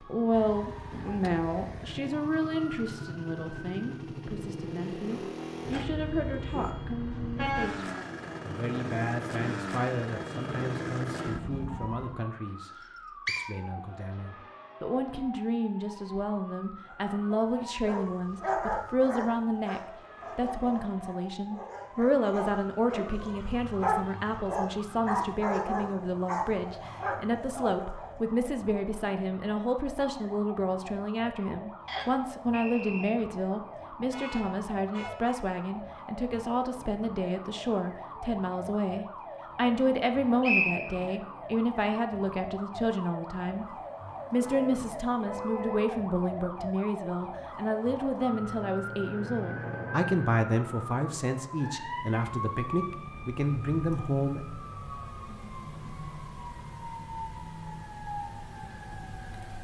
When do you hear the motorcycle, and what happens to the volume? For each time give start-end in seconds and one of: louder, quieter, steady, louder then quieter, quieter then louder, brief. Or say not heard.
0.0-12.0 louder.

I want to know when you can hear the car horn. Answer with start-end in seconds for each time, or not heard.
5.7-7.7, 34.1-35.4, 44.4-45.9.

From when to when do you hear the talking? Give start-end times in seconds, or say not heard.
0.0-54.5.